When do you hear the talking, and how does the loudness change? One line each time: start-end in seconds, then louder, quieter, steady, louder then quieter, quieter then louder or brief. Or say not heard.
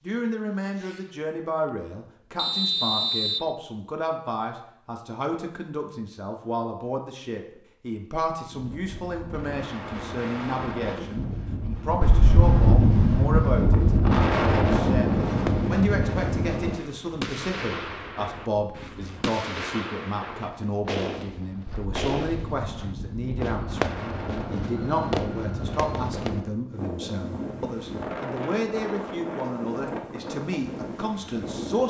0.0-31.8 steady.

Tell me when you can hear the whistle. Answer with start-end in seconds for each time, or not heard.
2.4-3.5.